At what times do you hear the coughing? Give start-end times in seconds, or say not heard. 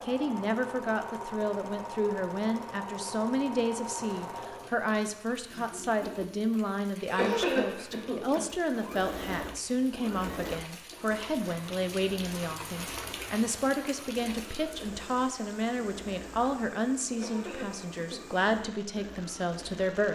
7.0-8.4, 17.1-18.4.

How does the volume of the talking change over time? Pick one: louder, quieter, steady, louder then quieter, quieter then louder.
steady.